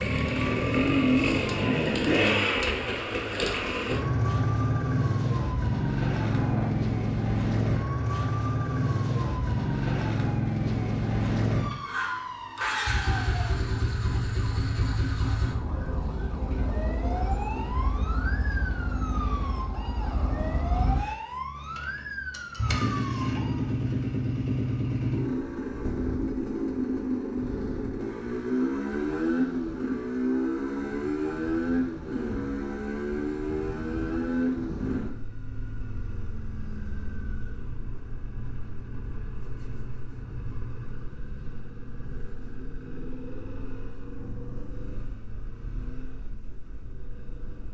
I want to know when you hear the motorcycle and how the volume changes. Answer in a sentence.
You can hear the motorcycle from 0.0 to 47.6 s, getting quieter.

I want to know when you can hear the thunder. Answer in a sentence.
The thunder can be heard from 6.2 to 6.8 s.